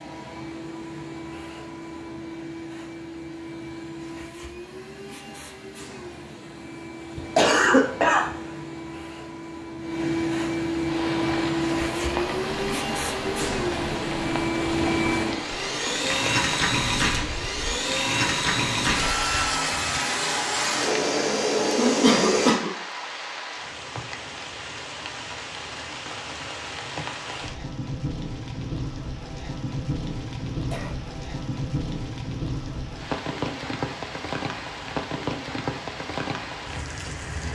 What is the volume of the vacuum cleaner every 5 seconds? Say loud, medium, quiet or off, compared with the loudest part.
quiet, quiet, loud, loud, loud, off, off, off.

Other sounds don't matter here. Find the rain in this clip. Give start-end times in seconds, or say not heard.
10.8-37.4.